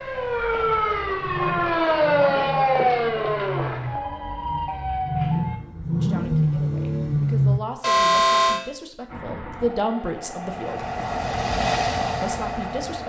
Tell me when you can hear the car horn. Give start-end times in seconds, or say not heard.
7.8-8.6.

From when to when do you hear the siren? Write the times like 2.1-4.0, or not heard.
0.0-5.6.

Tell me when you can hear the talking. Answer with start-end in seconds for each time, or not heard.
6.0-10.8, 12.2-13.0.